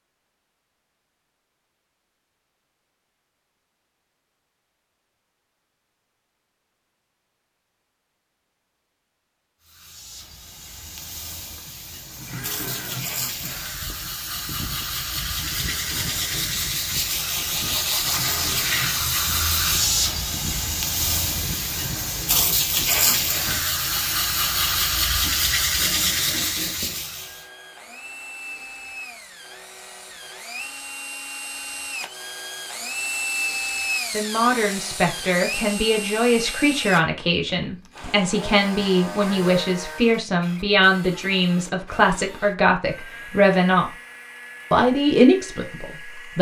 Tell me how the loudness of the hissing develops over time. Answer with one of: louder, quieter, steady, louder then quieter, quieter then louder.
louder.